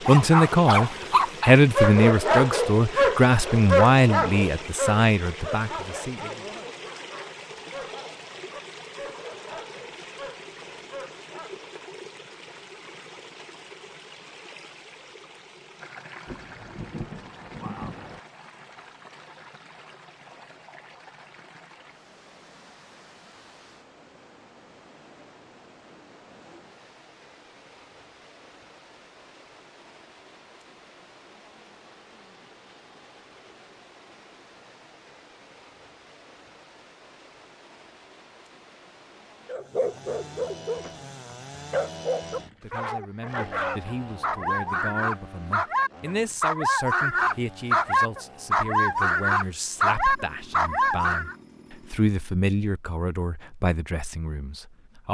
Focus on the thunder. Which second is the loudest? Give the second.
18 s.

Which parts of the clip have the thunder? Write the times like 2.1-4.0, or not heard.
16.2-18.2.